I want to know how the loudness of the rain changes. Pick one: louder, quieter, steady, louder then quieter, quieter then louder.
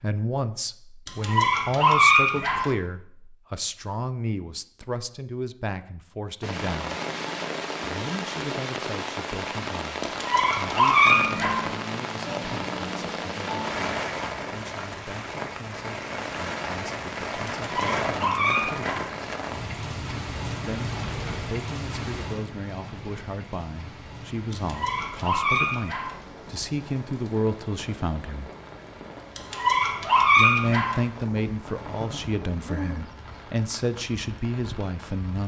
quieter.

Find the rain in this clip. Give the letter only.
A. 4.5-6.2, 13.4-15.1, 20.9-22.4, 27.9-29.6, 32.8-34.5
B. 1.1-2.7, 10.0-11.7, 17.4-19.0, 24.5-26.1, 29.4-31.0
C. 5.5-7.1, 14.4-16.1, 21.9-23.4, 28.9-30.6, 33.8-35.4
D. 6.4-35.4
D.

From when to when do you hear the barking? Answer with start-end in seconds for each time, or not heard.
1.1-2.7, 10.0-11.7, 17.4-19.0, 24.5-26.1, 29.4-31.0.